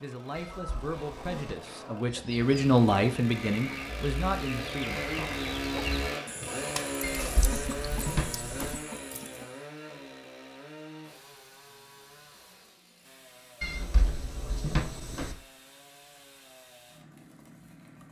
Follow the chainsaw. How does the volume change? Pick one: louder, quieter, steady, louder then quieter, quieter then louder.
louder then quieter.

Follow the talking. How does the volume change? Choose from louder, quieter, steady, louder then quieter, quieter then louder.
louder then quieter.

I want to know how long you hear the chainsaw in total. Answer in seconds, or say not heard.
18 s.